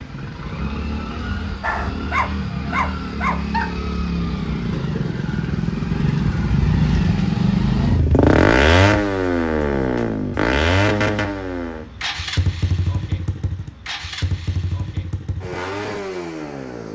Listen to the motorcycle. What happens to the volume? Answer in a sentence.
The loudness of the motorcycle goes up, then down.